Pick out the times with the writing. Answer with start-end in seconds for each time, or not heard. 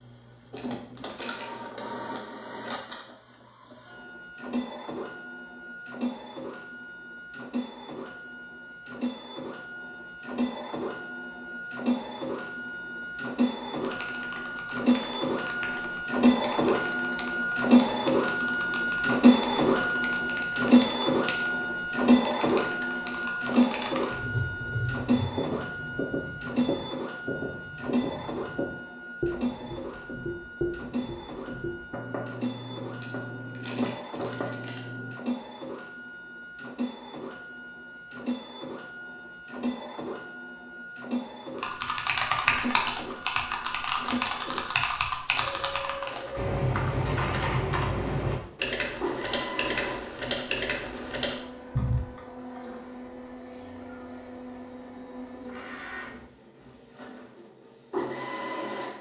24.1-35.1.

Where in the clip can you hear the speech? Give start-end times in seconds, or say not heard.
not heard.